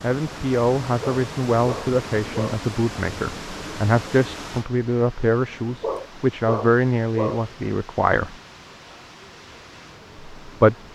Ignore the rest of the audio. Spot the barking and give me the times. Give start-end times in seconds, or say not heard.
1.0-2.6, 5.8-7.5.